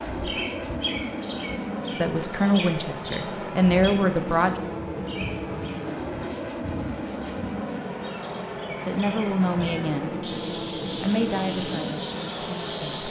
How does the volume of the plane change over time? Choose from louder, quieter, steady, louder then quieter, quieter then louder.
steady.